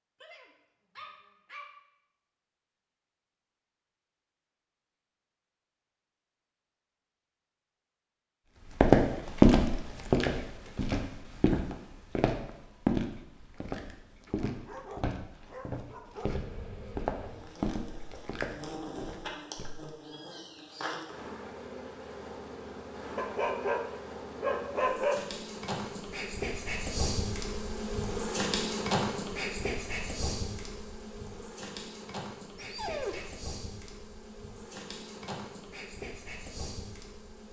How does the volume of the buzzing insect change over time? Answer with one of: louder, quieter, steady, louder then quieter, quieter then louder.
louder then quieter.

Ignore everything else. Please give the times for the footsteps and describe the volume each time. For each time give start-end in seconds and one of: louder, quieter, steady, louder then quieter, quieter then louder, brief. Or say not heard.
8.8-19.8 quieter.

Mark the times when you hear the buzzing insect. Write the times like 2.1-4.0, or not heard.
16.2-37.4.